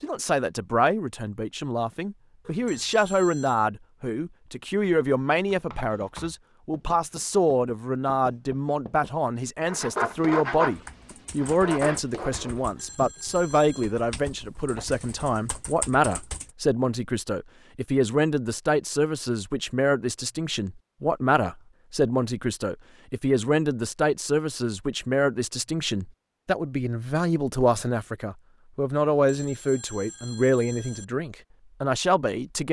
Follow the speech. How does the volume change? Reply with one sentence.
The loudness of the speech stays about the same.